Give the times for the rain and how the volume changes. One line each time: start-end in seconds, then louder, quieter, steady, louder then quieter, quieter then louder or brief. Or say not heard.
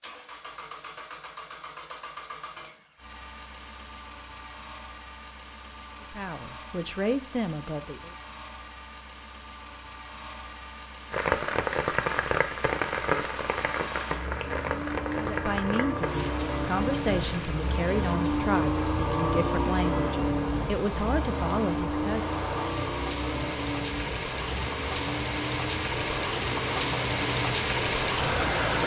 11.1-28.8 quieter then louder.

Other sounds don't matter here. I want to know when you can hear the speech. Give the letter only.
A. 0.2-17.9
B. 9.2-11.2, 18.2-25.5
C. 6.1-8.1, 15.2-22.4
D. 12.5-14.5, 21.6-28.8
C.